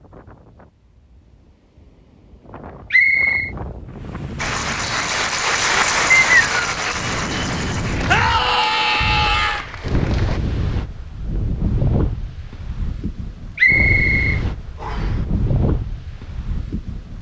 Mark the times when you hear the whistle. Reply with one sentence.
You can hear the whistle from 2.9 to 3.5 s, from 6.1 to 6.5 s and from 13.6 to 15.1 s.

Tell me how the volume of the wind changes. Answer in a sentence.
The loudness of the wind goes up.